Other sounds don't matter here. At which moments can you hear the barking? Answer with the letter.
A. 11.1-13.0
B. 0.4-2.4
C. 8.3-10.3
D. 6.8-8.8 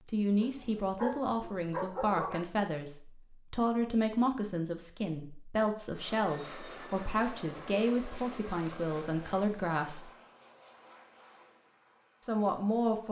B.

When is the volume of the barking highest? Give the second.
2 s.